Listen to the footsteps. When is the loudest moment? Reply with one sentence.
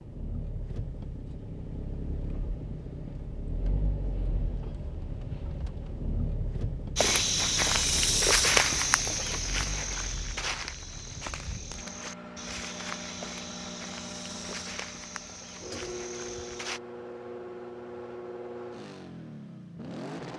The loudest moment of the footsteps is at 8 seconds.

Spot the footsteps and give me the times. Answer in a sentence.
The footsteps can be heard from 7.0 to 16.8 s.